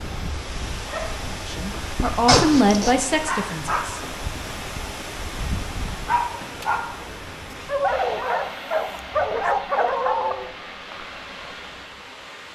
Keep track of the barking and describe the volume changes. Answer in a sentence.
The volume of the barking goes up.